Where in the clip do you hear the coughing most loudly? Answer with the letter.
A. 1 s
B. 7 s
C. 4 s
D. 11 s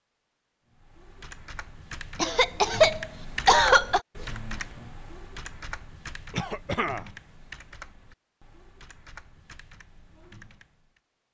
C.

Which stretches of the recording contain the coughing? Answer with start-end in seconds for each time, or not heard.
2.1-4.0, 6.3-7.1.